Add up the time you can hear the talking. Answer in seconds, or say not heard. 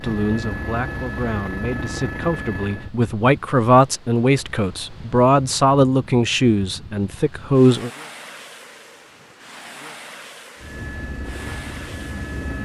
8 s.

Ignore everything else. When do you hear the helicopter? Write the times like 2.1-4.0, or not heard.
0.0-2.9, 10.6-12.6.